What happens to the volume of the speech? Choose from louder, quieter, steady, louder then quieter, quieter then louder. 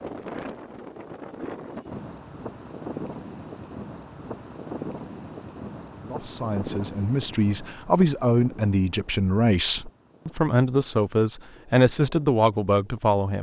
louder.